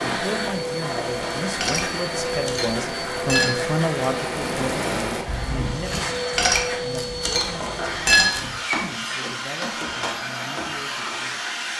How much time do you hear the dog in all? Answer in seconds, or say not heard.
not heard.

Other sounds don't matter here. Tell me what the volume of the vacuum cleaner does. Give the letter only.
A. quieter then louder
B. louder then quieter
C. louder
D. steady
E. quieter
D.